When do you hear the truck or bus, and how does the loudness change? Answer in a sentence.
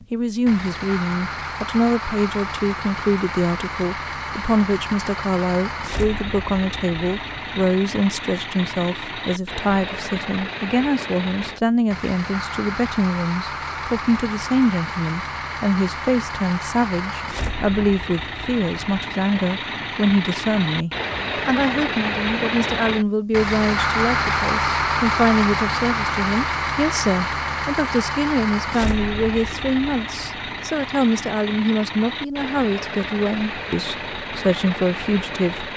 You can hear the truck or bus from 0.0 to 35.7 s, getting louder then quieter.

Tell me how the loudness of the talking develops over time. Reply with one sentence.
The volume of the talking stays about the same.